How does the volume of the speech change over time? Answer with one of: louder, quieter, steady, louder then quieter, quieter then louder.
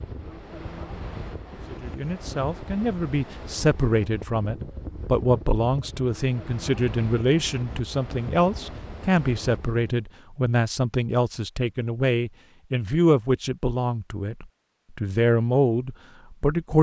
steady.